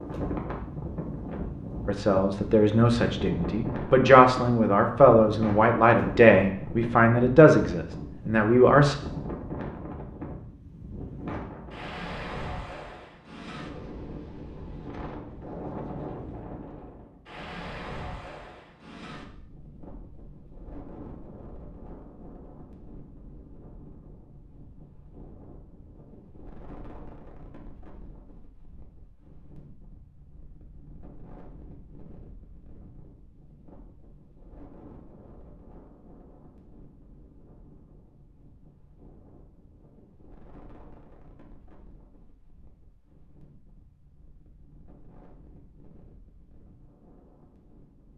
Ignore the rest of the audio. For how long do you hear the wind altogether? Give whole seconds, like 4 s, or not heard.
48 s.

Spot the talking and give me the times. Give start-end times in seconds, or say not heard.
1.9-8.9.